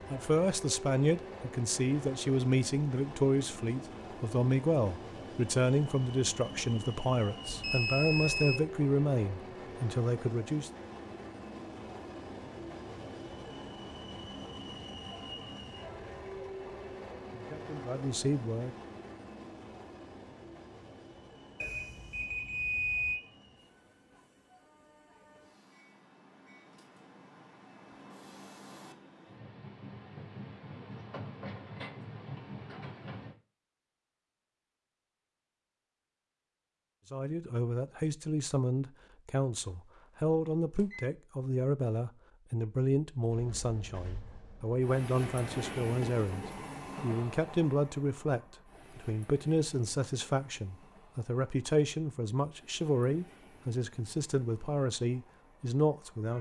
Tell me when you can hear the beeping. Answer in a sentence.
You can hear the beeping from 7.5 to 8.6 s, from 21.6 to 23.2 s and from 40.0 to 41.1 s.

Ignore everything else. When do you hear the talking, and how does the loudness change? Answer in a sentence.
The talking can be heard from 0.1 to 10.7 s, at a steady volume; briefly from 17.3 to 18.8 s; and from 37.1 to 56.3 s, at a steady volume.